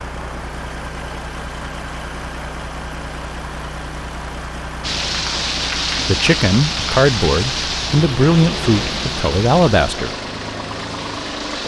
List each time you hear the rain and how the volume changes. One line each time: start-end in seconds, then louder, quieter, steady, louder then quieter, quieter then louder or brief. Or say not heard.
4.8-11.6 quieter.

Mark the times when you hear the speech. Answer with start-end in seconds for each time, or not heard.
6.0-10.1.